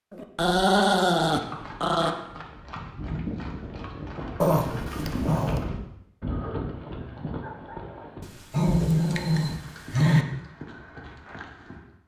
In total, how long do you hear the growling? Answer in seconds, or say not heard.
5 s.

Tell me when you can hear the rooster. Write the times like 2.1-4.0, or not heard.
not heard.